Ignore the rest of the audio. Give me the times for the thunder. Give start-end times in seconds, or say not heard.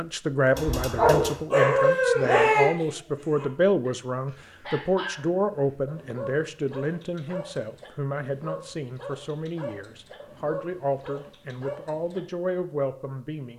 not heard.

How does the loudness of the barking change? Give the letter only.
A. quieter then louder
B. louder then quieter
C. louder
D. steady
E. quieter
E.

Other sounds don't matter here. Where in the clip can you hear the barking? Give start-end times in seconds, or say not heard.
0.6-12.3.